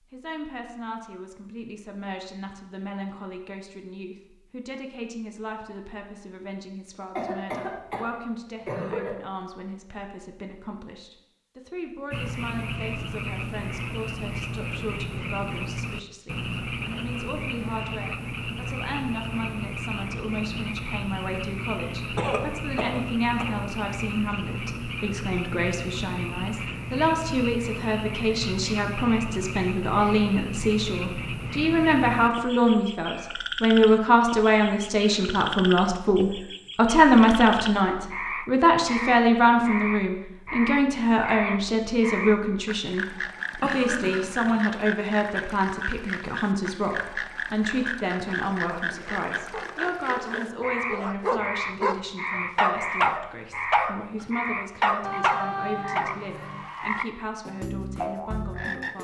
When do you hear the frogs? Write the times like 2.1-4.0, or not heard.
12.1-58.9.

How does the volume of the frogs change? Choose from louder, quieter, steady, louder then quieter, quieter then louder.
steady.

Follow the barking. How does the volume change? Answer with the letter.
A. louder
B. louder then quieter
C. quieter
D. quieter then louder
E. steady
A.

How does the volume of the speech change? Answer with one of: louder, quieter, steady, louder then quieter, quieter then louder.
louder then quieter.